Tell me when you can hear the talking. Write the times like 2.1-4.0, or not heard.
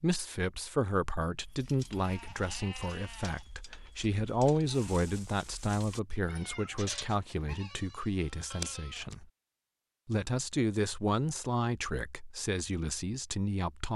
0.0-9.2, 10.1-13.9.